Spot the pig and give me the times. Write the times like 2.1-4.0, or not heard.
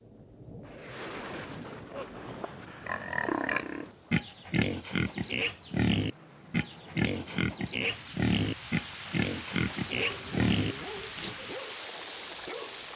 1.9-11.5.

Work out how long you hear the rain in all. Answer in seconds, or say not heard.
13 s.